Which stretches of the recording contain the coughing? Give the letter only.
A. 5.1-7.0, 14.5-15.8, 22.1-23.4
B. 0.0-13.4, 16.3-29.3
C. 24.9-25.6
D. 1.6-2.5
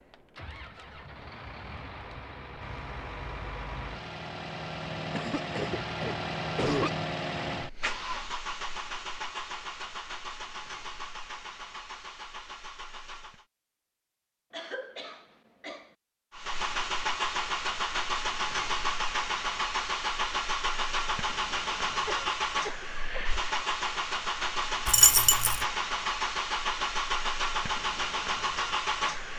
A.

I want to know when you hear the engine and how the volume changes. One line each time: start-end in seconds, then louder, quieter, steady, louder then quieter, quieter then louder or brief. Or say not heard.
0.0-13.4 louder then quieter
16.3-29.3 steady.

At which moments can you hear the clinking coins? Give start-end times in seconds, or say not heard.
24.9-25.6.